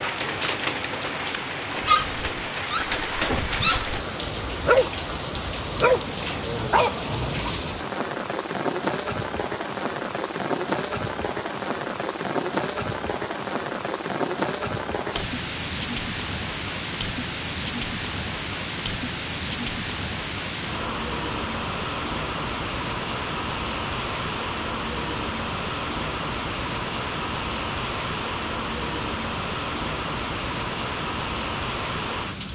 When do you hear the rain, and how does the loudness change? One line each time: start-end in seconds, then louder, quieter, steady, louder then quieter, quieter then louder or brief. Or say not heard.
0.0-32.5 steady.